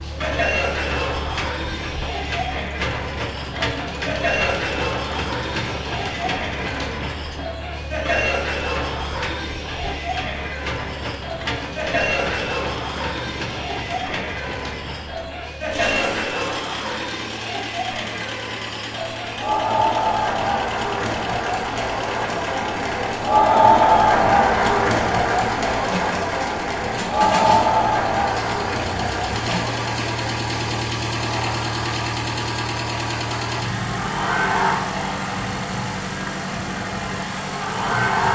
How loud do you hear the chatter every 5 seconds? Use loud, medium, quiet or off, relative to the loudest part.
medium, medium, medium, medium, loud, loud, medium, medium.